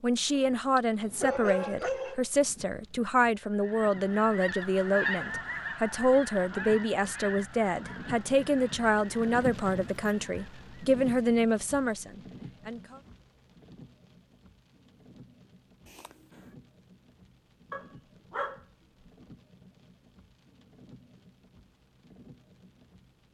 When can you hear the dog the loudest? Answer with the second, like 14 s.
1 s.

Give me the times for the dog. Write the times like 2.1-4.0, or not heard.
0.3-2.3, 17.7-18.6.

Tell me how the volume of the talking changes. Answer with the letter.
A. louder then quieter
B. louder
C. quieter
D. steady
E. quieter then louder
D.